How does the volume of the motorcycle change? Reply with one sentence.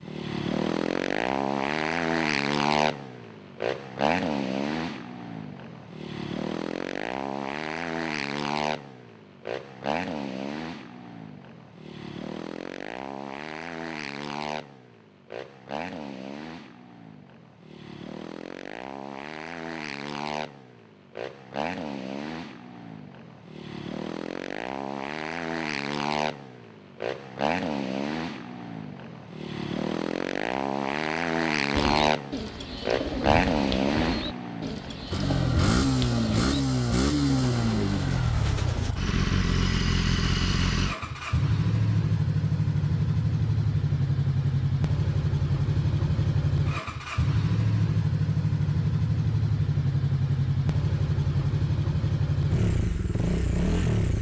The loudness of the motorcycle goes down, then up.